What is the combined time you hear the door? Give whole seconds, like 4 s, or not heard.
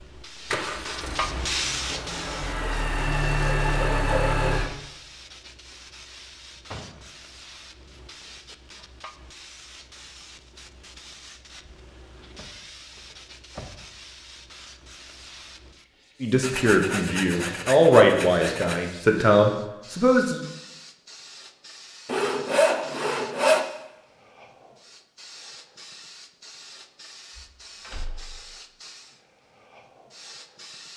4 s.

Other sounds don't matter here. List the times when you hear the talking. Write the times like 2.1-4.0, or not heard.
16.2-20.4.